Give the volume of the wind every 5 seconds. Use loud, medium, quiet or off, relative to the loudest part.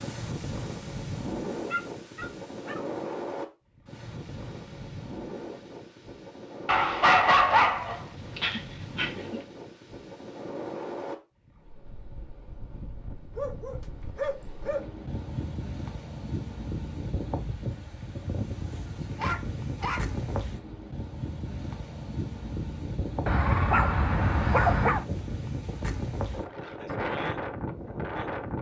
loud, medium, medium, loud, loud, loud.